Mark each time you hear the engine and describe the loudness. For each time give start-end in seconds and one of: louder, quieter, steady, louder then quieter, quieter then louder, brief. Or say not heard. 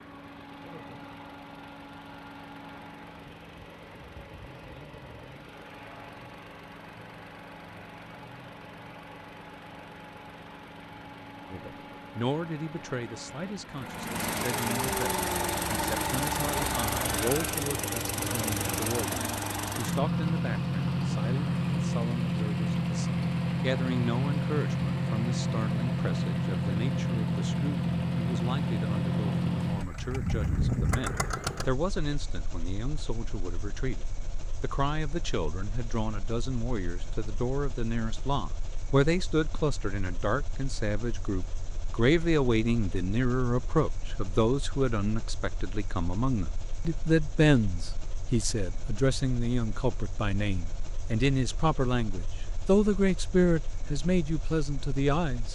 0.0-55.5 louder then quieter.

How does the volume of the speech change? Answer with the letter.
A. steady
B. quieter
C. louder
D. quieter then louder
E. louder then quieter
C.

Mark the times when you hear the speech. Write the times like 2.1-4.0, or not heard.
11.4-55.5.